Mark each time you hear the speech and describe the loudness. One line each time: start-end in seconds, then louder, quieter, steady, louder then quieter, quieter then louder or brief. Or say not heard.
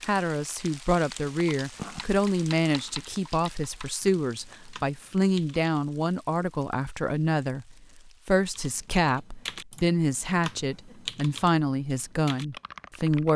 0.1-13.3 steady.